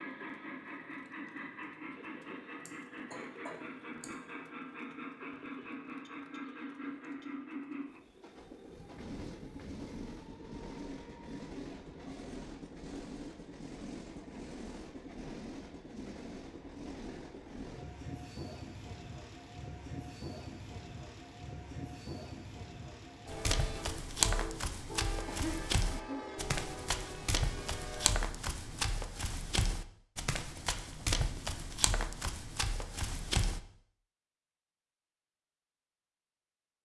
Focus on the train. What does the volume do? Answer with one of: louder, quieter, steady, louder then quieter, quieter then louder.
steady.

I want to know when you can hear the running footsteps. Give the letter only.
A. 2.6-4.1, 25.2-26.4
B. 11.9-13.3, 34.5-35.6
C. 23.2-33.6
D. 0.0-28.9
C.